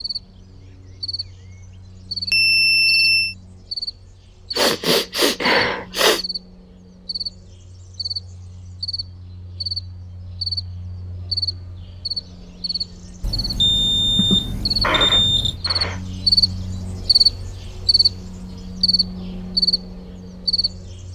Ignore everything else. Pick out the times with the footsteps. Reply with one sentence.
The footsteps can't be heard in this clip.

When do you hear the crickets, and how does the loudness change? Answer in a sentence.
The crickets can be heard from 0.0 to 21.1 s, getting louder.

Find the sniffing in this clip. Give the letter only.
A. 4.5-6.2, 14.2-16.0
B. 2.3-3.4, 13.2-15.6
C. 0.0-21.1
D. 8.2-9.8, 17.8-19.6
A.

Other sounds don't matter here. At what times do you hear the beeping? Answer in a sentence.
The beeping can be heard from 2.3 to 3.4 s and from 13.2 to 15.6 s.